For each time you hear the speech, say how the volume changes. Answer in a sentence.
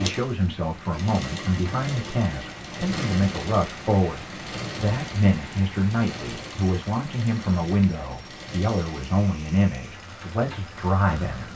The speech can be heard from 0.0 to 11.5 s, at a steady volume.